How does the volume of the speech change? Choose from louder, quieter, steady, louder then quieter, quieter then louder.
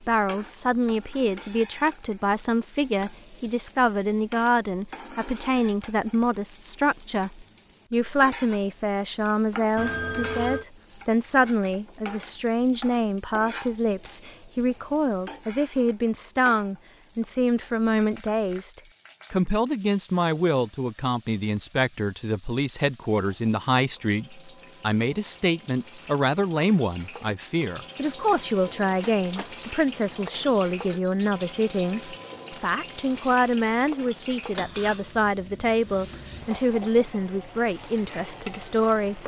steady.